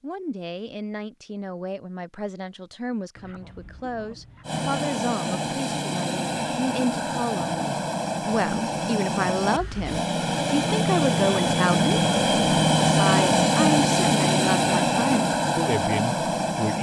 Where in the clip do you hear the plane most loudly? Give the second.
13 s.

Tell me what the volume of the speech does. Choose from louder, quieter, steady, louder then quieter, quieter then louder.
louder.